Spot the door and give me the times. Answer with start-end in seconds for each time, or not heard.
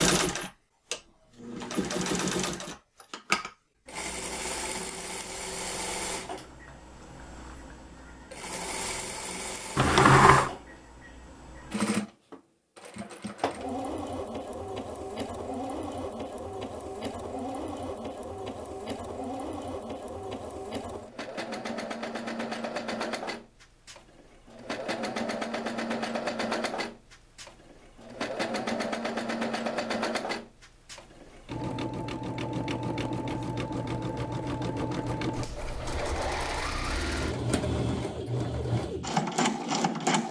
9.8-10.5.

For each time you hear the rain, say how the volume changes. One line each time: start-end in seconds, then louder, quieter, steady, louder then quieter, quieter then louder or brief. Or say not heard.
not heard.